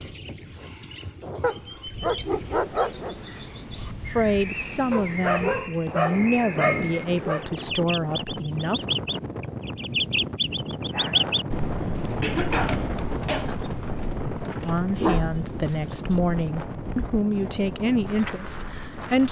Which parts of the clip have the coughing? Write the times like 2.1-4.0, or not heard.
12.2-13.6.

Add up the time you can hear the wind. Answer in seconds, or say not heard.
19 s.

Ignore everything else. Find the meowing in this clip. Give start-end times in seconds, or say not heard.
not heard.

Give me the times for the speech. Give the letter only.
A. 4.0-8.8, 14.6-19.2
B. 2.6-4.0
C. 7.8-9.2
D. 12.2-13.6
A.